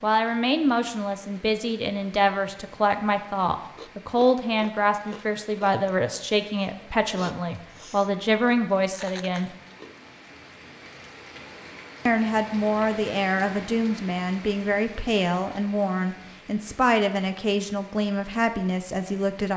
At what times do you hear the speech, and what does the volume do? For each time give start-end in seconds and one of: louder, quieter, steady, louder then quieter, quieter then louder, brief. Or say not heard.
0.0-9.6 steady
12.1-19.5 steady.